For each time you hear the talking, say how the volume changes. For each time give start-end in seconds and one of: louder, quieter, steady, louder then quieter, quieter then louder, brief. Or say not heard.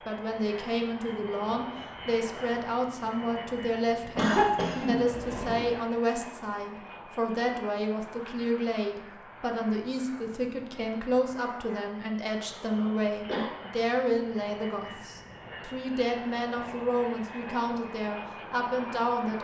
0.1-19.3 steady.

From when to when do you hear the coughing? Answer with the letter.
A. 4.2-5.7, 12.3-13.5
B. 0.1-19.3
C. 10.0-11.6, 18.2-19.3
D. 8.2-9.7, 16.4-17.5
A.